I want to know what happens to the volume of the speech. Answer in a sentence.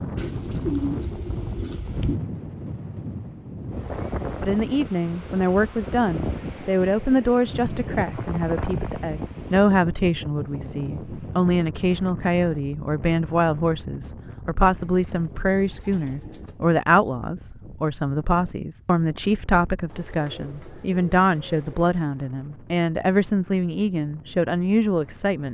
The volume of the speech stays about the same.